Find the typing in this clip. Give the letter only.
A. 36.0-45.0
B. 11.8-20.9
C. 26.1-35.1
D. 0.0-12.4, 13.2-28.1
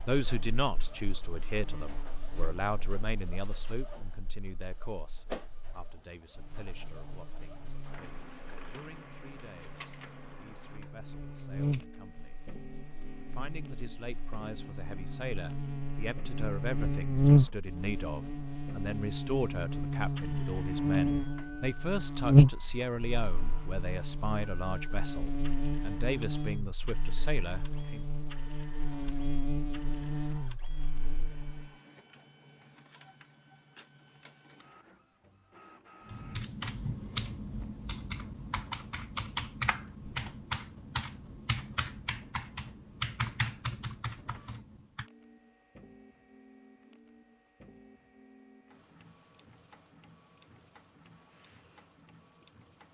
A.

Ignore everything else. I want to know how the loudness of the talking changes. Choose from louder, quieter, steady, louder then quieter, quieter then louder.
quieter then louder.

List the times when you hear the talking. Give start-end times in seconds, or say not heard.
0.0-12.4, 13.2-28.1.